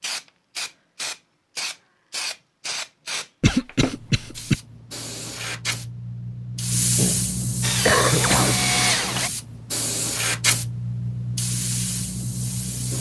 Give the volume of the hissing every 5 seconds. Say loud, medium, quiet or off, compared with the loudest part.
medium, loud, loud.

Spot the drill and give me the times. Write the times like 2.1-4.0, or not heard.
7.6-9.3.